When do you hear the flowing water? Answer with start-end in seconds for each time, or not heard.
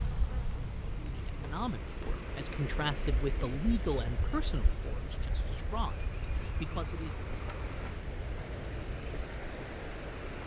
0.1-10.4.